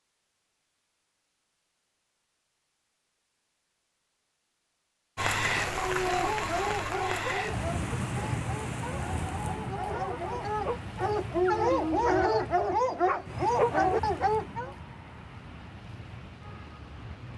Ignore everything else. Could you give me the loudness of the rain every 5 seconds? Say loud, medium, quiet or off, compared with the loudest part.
off, loud, medium, quiet.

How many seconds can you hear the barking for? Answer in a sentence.
You can hear the barking for 9 seconds altogether.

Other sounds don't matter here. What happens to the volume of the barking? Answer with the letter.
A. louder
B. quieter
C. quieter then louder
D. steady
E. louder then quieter
C.